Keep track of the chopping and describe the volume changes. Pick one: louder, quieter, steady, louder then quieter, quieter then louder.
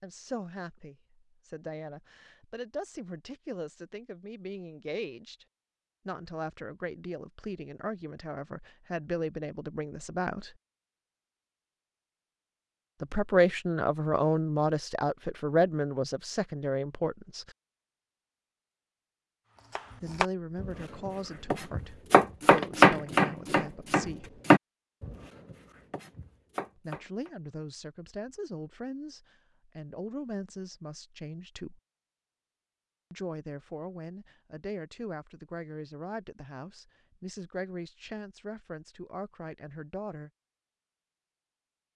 louder then quieter.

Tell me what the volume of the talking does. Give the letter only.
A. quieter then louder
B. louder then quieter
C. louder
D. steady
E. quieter
B.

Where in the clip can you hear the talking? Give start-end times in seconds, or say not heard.
0.0-5.5, 6.0-10.6, 13.0-17.6, 20.0-24.4, 26.8-31.8, 33.1-40.3.